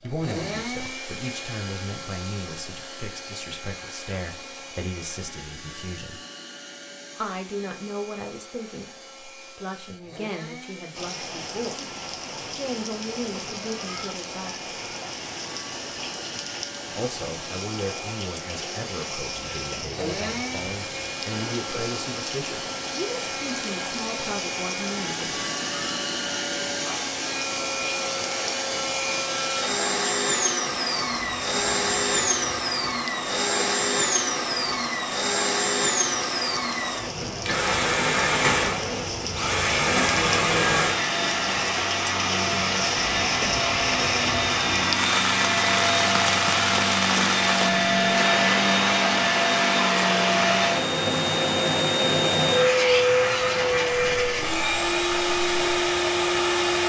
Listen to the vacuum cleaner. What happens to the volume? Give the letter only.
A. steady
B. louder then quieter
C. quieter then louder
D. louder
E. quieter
D.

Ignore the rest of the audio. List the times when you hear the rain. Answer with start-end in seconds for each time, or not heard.
10.9-56.8.